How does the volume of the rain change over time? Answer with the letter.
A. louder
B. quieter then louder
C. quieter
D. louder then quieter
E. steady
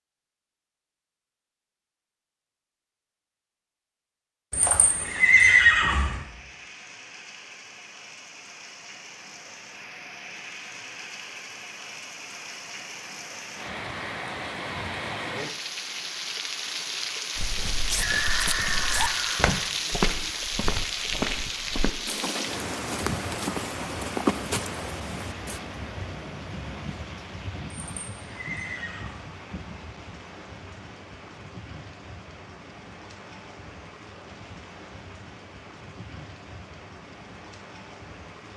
D.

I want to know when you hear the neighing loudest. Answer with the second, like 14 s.
6 s.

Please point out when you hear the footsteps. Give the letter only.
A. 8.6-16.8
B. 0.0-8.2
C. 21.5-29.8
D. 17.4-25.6
D.